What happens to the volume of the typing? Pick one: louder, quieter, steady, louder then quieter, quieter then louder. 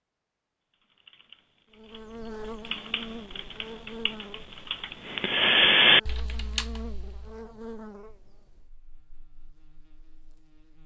louder.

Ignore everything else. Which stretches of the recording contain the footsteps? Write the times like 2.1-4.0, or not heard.
not heard.